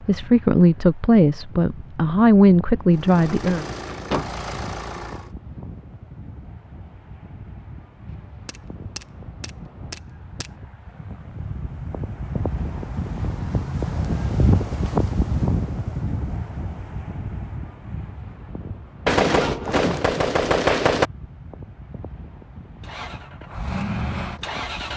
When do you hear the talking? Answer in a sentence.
The talking can be heard from 0.1 to 3.6 s.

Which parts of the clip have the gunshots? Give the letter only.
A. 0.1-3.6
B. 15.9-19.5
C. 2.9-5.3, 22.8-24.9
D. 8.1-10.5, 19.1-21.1
D.